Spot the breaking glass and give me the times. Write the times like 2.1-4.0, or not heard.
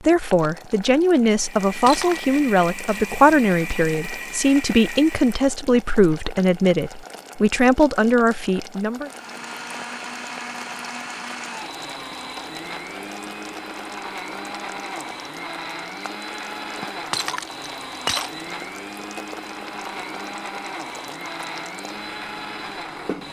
1.9-2.3, 17.1-18.4.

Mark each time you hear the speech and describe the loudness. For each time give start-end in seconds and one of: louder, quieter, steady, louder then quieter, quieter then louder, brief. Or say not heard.
0.0-9.1 steady.